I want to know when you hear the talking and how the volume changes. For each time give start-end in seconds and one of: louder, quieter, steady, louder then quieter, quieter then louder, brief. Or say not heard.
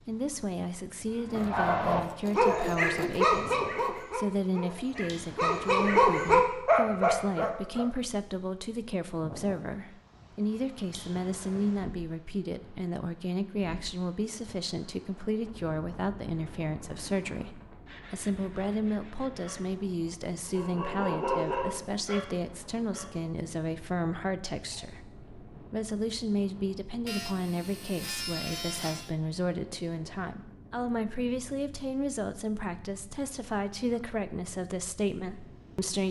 0.1-36.0 steady.